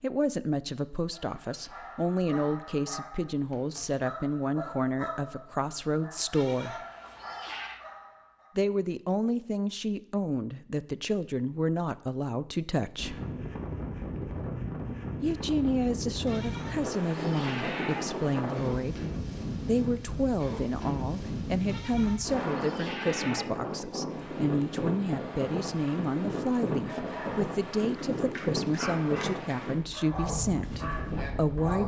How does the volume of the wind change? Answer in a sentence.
The volume of the wind stays about the same.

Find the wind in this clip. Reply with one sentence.
You can hear the wind from 12.9 to 31.8 s.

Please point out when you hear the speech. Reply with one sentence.
You can hear the speech from 0.0 to 6.8 s, from 8.6 to 13.2 s, from 15.2 to 19.0 s and from 19.6 to 31.8 s.